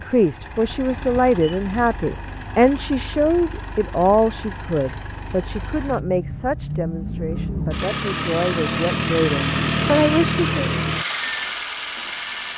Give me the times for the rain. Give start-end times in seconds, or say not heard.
not heard.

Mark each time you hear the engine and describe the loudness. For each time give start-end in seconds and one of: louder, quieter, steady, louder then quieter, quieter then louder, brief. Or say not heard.
0.0-12.5 louder.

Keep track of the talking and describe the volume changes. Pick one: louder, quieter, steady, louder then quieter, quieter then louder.
quieter then louder.